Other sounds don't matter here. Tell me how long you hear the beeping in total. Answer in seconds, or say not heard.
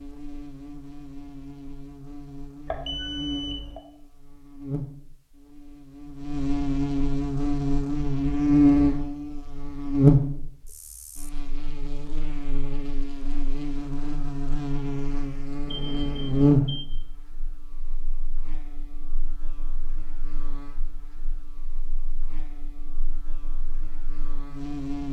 2 s.